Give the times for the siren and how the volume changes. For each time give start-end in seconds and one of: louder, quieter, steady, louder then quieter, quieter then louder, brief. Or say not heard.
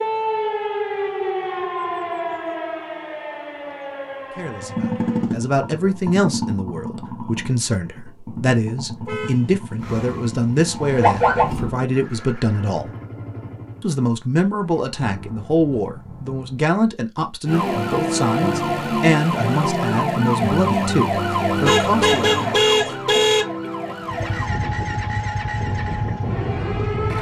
0.0-5.3 quieter
9.8-11.8 brief
17.4-27.1 quieter.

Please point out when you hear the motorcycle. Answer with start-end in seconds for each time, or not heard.
4.5-16.6, 24.1-27.1.